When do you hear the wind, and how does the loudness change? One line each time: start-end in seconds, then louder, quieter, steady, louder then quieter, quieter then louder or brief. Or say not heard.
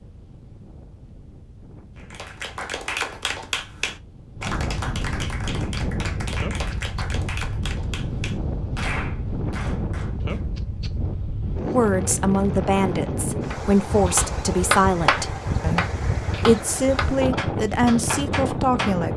0.0-19.1 louder.